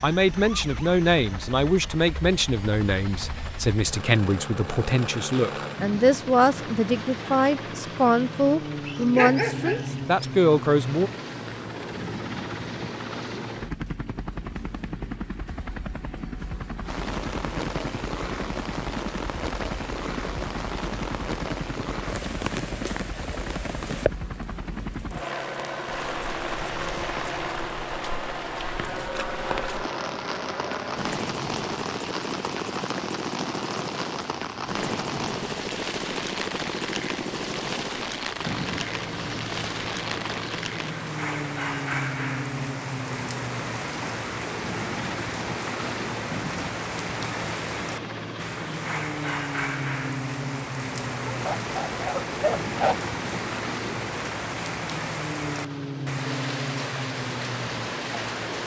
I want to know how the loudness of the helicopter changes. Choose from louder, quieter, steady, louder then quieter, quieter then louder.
steady.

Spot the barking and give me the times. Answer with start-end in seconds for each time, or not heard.
8.8-10.0, 51.2-53.0.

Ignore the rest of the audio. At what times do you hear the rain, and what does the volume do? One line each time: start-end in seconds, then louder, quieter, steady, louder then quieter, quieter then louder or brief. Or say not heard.
16.8-58.6 steady.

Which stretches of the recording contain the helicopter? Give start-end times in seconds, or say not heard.
0.0-58.6.